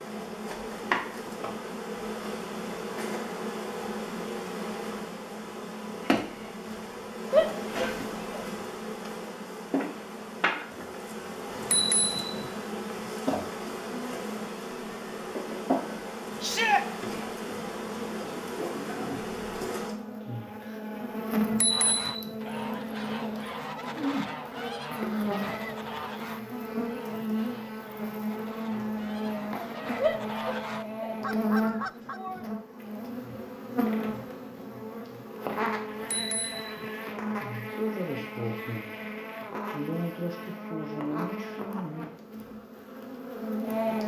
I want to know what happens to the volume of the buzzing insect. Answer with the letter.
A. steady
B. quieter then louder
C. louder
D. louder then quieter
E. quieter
A.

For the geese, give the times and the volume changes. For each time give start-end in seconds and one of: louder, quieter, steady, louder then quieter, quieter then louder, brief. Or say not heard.
21.6-32.2 quieter then louder.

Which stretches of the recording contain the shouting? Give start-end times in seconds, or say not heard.
7.3-8.4, 16.4-16.9, 30.0-32.5.